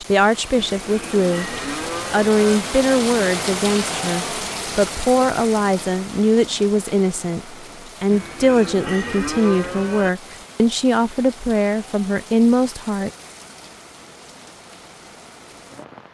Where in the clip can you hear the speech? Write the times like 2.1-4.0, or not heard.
0.1-13.1.